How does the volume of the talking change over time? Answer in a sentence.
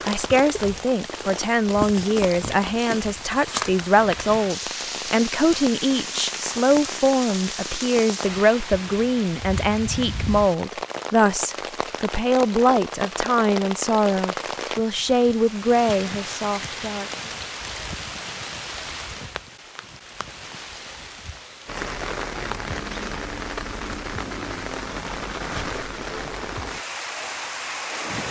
The volume of the talking stays about the same.